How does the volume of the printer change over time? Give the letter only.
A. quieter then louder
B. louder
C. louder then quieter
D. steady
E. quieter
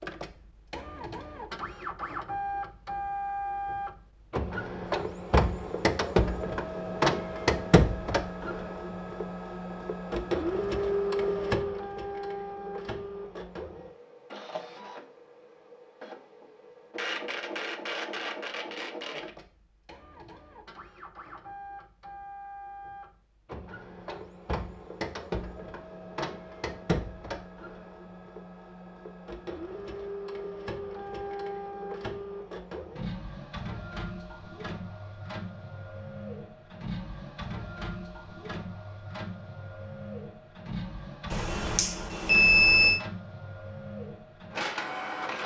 E.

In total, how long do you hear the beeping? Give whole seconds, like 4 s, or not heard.
2 s.